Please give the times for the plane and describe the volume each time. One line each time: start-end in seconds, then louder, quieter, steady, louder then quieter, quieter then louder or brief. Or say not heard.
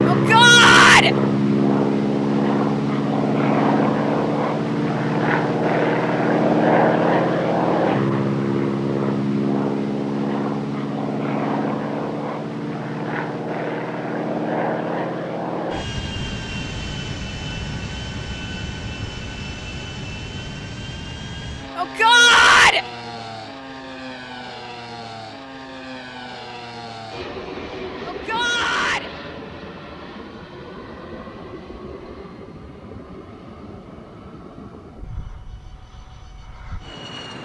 0.0-37.4 quieter.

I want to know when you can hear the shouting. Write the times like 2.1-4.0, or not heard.
0.1-1.1, 21.8-22.9, 28.1-29.1.